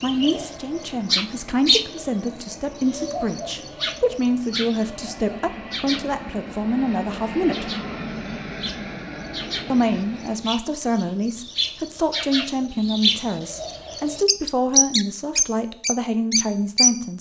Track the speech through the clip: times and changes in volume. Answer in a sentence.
You can hear the speech from 0.0 to 7.8 s, at a steady volume; and from 9.7 to 17.1 s, at a steady volume.